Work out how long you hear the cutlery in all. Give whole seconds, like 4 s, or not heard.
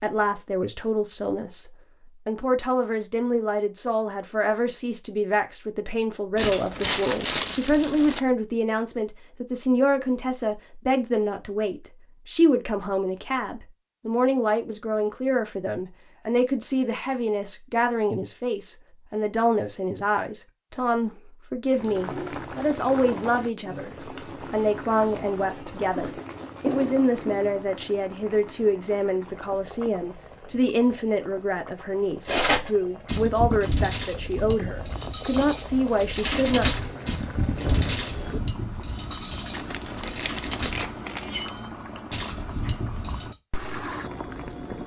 11 s.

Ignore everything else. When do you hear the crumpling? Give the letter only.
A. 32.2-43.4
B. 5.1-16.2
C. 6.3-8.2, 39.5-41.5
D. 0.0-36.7
C.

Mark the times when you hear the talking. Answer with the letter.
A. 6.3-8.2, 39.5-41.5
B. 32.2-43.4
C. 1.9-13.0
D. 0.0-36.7
D.